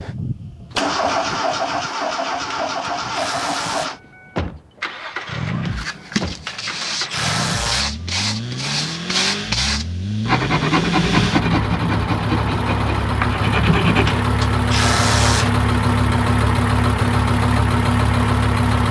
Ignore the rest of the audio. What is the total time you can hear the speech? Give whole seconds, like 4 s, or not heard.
not heard.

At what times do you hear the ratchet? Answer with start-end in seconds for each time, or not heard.
2.5-4.0, 6.4-7.9, 14.0-15.5.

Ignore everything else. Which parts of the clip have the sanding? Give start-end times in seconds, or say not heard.
5.7-14.2.